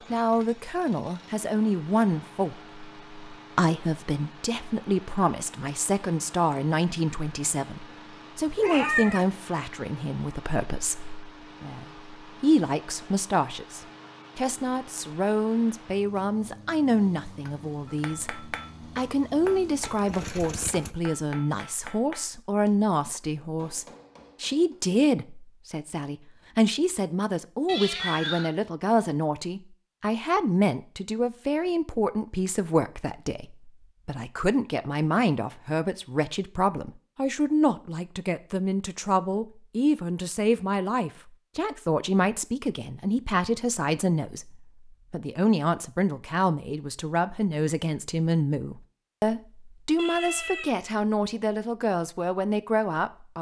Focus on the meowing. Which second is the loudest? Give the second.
9 s.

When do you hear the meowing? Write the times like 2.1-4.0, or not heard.
8.4-9.2, 27.6-28.5, 50.0-50.8.